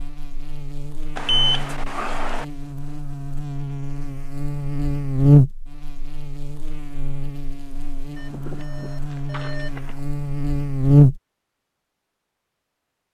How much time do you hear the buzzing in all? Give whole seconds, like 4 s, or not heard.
11 s.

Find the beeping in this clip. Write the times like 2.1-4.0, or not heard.
1.1-2.5, 8.2-10.0.